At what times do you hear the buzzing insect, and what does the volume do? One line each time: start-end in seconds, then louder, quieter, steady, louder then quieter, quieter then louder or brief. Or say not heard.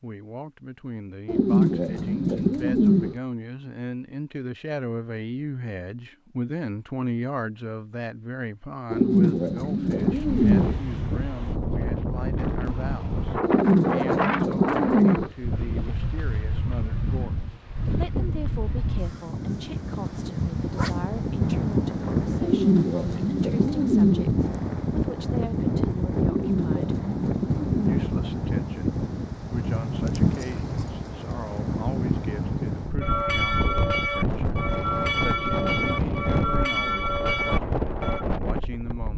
not heard.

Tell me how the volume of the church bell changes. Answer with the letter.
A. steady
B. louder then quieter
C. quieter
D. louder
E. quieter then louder
A.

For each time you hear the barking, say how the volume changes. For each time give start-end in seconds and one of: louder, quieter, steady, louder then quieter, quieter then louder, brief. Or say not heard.
not heard.